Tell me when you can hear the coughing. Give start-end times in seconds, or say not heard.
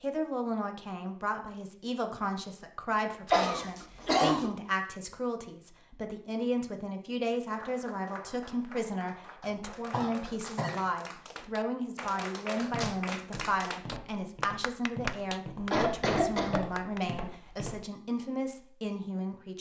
3.2-4.5, 9.4-10.8, 15.7-16.6.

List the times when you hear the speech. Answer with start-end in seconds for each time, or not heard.
0.0-19.5.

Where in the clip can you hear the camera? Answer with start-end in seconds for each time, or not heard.
not heard.